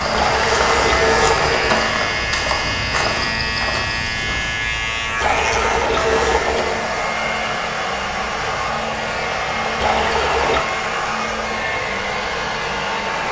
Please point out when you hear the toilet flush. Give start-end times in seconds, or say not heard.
0.1-1.8, 5.2-6.8, 9.8-10.7.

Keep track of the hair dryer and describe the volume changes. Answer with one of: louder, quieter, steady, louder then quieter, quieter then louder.
quieter then louder.